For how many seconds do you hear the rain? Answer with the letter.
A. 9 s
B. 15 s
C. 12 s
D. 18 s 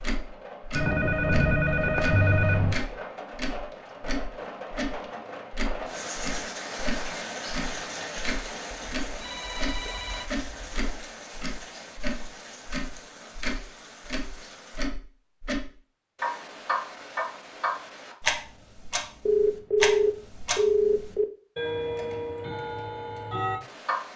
B.